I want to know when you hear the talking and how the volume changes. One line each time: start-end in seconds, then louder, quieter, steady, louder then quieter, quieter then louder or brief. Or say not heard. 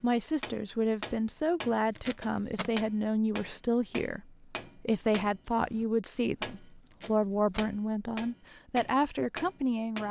0.0-10.0 steady.